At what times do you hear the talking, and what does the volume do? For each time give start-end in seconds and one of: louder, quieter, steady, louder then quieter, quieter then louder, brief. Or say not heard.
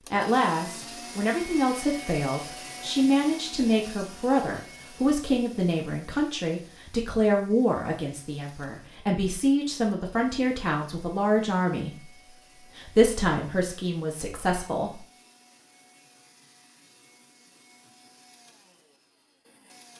0.1-15.1 steady.